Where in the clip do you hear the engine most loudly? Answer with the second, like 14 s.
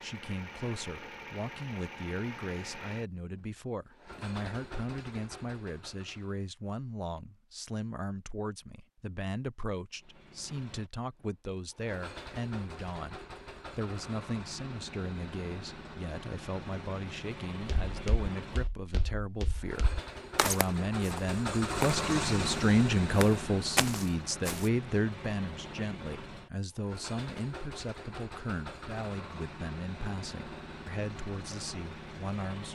22 s.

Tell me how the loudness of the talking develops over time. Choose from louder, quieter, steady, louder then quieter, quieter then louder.
louder then quieter.